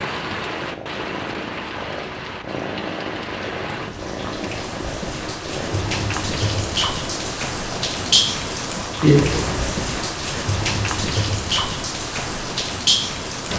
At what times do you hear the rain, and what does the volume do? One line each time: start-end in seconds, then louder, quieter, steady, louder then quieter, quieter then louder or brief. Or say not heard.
0.0-13.5 louder.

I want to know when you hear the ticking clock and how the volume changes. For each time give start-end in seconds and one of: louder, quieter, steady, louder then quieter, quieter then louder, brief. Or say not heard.
not heard.